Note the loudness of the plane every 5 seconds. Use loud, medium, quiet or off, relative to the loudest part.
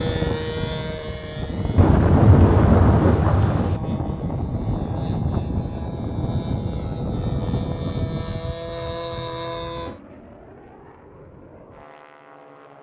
loud, loud, quiet.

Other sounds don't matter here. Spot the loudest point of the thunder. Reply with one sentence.
The volume of the thunder peaks at 2 seconds.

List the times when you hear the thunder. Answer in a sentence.
The thunder can be heard from 1.8 to 3.8 s.